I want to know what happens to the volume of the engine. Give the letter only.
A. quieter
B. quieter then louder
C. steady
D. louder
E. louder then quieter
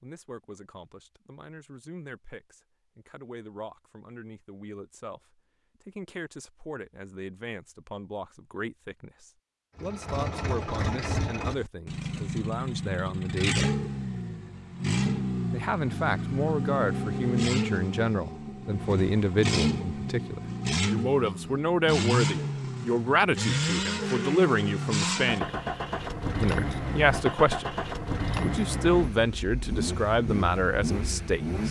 C.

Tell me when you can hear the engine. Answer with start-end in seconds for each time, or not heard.
9.8-31.6.